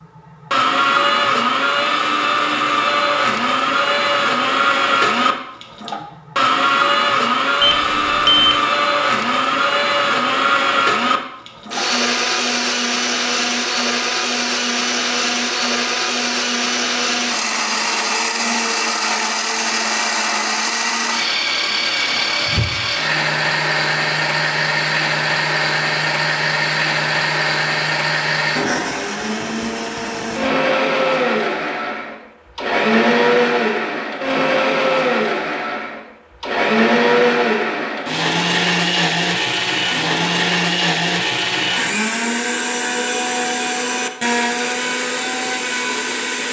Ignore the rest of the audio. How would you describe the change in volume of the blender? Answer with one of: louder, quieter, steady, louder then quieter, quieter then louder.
steady.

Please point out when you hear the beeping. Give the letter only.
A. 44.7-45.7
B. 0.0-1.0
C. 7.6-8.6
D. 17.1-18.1
C.